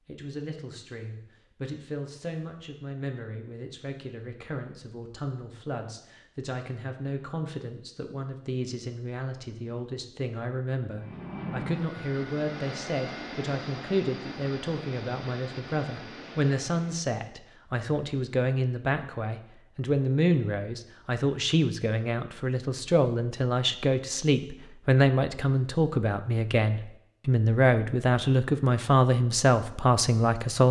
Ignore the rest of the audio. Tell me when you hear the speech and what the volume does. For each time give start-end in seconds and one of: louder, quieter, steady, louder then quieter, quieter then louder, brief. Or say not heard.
0.1-30.6 louder.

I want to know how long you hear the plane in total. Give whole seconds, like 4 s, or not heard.
6 s.